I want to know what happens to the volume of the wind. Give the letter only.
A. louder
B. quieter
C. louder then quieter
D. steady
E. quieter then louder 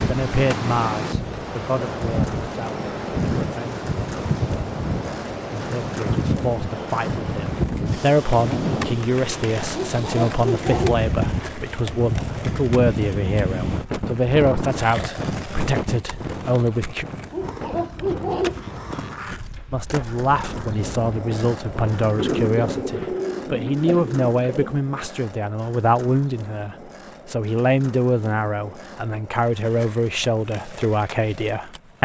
B.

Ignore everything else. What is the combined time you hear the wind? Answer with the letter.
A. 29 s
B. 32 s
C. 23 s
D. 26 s
C.